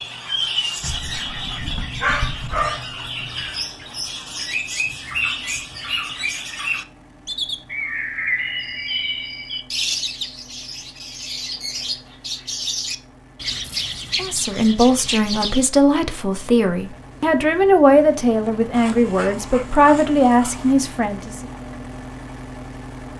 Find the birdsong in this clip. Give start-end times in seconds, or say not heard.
0.0-15.7.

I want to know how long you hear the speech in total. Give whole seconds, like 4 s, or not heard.
7 s.